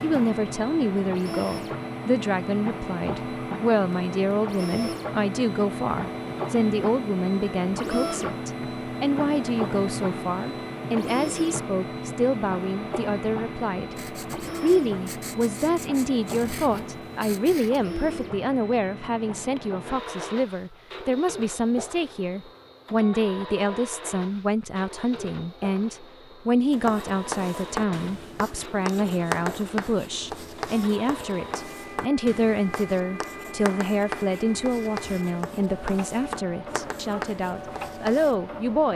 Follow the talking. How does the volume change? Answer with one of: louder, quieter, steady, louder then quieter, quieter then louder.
steady.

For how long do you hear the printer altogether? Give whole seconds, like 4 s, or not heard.
39 s.